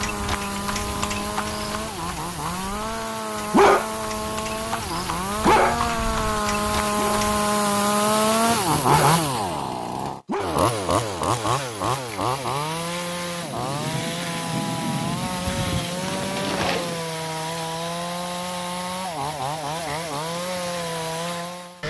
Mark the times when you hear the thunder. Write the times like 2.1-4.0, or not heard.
13.4-17.1.